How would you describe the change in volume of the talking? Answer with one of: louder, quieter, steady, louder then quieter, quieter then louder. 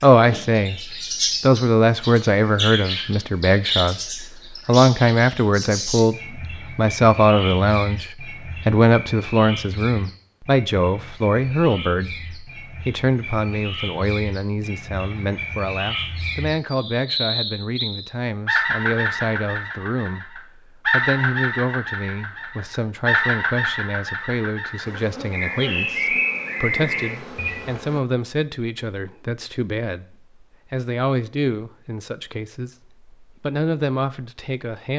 quieter.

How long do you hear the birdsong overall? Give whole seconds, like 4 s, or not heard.
28 s.